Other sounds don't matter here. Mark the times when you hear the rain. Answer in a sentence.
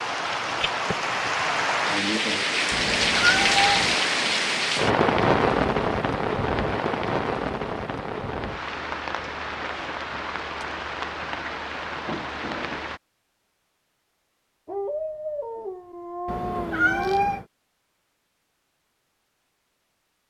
The rain can be heard from 0.0 to 13.0 s.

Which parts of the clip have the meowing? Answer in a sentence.
You can hear the meowing from 2.7 to 4.0 s and from 16.2 to 17.4 s.